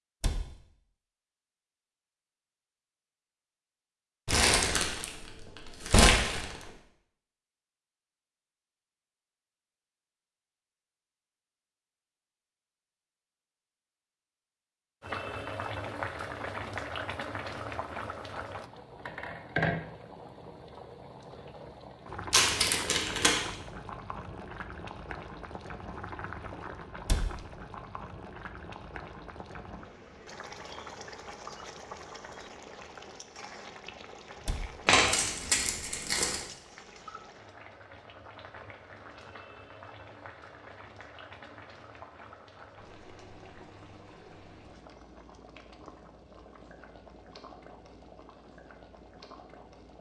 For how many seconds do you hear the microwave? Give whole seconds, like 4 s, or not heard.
not heard.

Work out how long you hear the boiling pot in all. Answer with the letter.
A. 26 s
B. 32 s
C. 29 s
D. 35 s
D.